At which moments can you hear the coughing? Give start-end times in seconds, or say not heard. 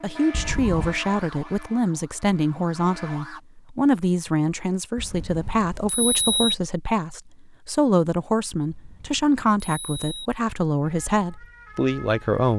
not heard.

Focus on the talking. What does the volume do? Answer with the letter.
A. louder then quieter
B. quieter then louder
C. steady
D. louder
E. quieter
C.